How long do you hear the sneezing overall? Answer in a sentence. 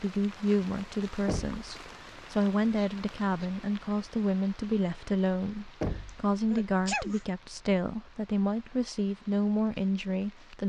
You can hear the sneezing for 2 seconds altogether.